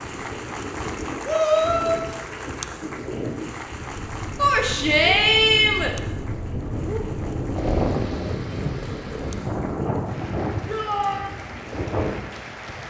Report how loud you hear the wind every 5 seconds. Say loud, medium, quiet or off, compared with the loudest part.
medium, loud, loud.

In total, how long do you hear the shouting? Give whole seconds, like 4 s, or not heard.
3 s.